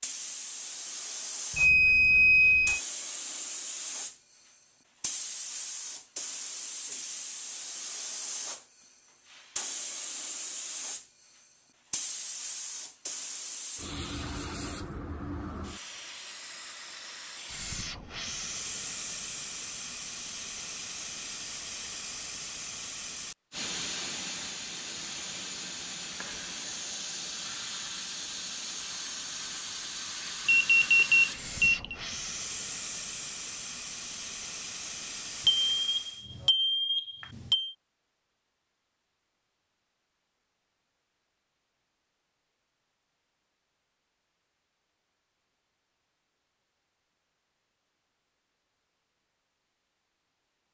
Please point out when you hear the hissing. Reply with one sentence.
The hissing can be heard from 0.0 to 36.2 s.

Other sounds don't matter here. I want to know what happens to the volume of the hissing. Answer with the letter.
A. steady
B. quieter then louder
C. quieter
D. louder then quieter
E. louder
A.